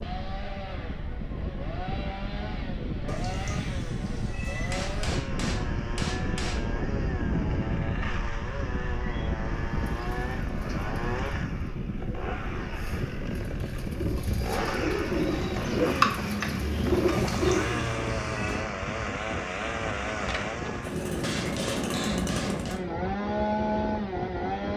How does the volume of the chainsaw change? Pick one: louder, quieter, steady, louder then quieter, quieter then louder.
louder.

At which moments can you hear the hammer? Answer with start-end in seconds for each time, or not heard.
4.7-6.7, 21.2-22.8.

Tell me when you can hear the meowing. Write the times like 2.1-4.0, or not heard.
3.0-5.1, 17.1-18.6.